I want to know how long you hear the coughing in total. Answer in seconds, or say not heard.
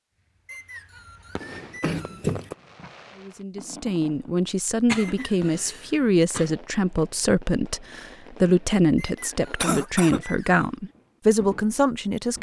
3 s.